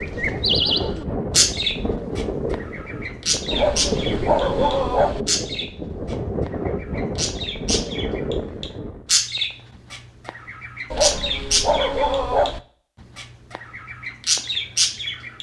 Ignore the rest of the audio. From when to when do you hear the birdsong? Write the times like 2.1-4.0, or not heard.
0.0-12.6, 13.2-15.3.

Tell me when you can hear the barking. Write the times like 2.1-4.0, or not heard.
3.5-5.2, 10.9-12.6.